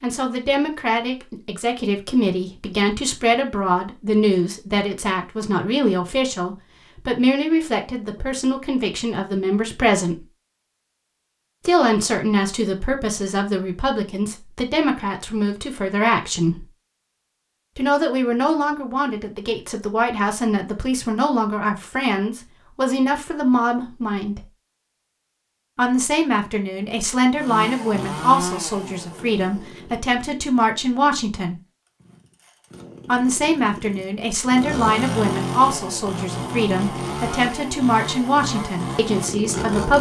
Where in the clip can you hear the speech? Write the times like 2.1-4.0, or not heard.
0.0-10.2, 11.7-16.6, 17.8-24.4, 25.8-31.6, 33.0-39.9.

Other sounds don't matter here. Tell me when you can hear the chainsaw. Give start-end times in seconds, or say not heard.
27.4-39.9.